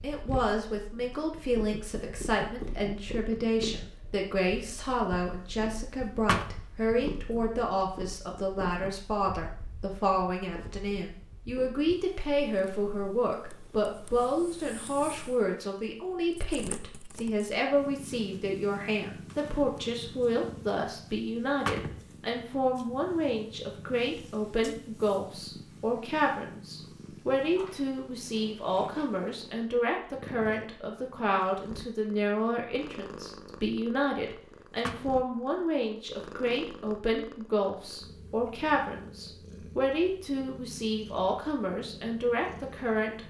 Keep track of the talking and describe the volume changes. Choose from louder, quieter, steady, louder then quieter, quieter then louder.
steady.